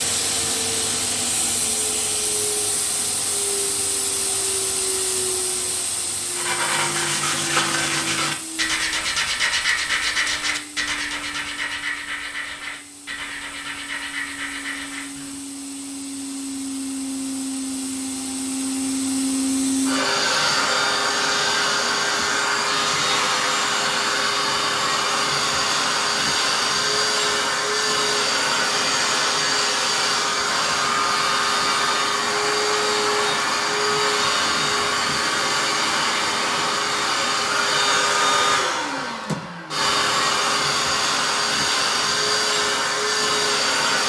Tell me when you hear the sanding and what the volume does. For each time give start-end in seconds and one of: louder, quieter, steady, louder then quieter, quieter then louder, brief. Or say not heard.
6.2-15.4 quieter.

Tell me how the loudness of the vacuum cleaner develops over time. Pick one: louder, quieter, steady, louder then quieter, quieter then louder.
quieter then louder.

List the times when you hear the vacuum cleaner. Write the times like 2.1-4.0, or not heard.
0.0-44.0.